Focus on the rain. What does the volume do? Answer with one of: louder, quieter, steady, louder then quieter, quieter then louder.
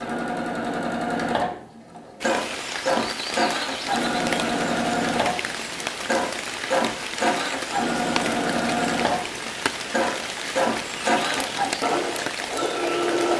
steady.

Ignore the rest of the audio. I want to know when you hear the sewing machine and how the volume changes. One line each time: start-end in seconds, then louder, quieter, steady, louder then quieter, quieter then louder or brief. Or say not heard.
0.0-13.3 steady.